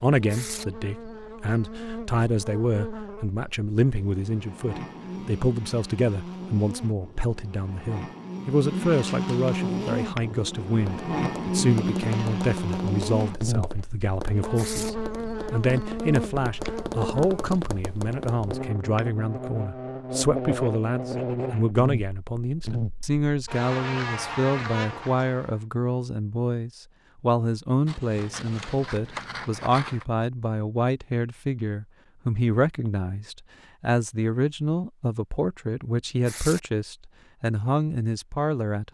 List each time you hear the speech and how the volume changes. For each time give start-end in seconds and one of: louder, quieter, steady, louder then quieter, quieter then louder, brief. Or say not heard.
0.0-38.8 steady.